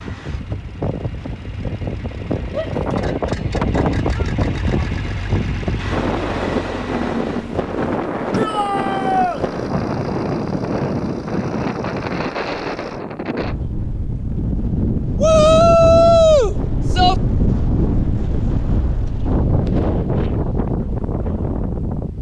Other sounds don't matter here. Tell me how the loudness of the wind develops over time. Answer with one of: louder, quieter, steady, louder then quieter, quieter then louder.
steady.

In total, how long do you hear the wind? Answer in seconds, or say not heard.
22 s.